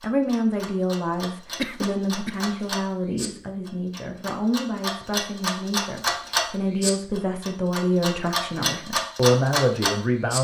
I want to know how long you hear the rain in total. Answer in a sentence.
You can't hear the rain here.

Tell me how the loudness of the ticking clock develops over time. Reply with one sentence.
The volume of the ticking clock goes up.